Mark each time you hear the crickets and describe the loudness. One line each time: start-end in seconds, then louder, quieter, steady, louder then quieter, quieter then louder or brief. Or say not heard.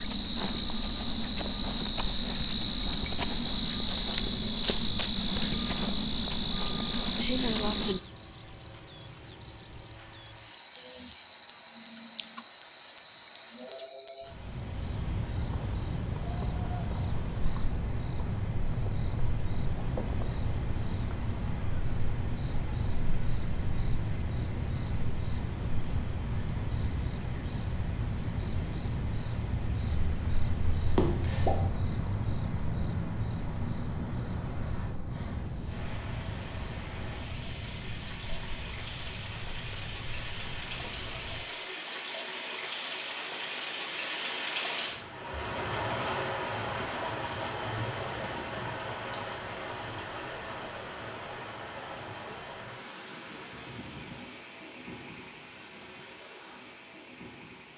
0.0-41.5 quieter.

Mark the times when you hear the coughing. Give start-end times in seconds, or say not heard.
30.9-31.7.